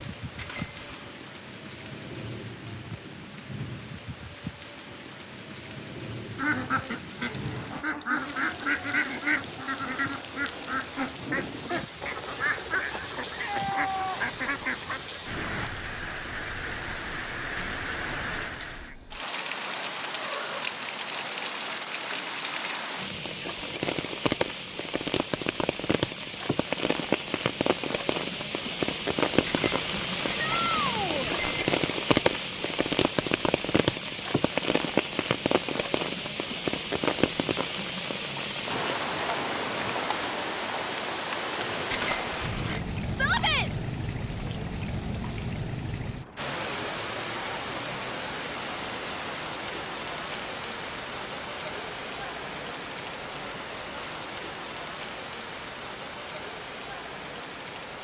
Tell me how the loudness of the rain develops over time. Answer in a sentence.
The volume of the rain goes up, then down.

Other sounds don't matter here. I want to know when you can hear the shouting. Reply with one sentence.
You can hear the shouting from 13.2 to 14.2 s, from 30.4 to 31.4 s and from 43.1 to 43.7 s.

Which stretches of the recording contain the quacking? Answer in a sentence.
The quacking can be heard from 6.3 to 15.2 s.